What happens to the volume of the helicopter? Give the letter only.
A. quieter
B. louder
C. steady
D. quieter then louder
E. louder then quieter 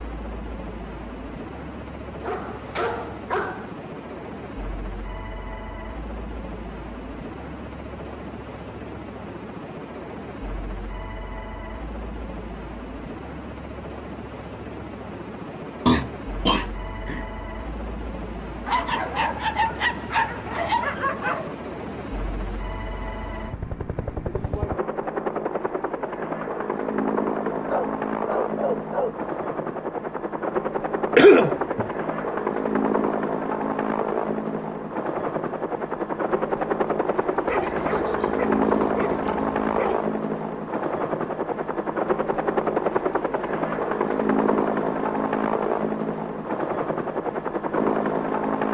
B.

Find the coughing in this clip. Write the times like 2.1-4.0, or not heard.
15.8-17.2, 31.1-31.9.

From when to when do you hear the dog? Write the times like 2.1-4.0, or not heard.
2.2-3.7, 18.6-21.6, 27.4-29.1, 37.5-40.0.